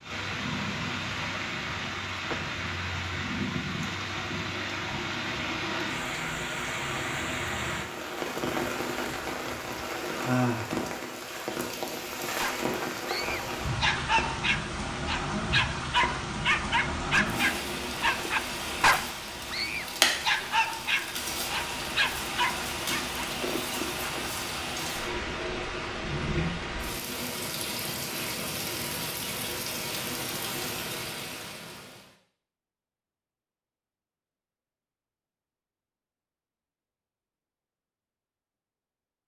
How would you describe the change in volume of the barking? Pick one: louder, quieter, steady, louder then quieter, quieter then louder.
steady.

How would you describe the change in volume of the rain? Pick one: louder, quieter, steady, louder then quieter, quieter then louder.
steady.